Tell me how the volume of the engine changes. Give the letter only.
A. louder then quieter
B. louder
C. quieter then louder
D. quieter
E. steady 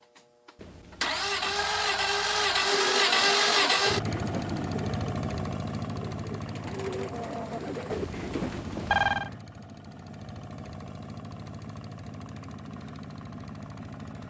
D.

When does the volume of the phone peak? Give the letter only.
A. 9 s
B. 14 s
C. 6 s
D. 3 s
A.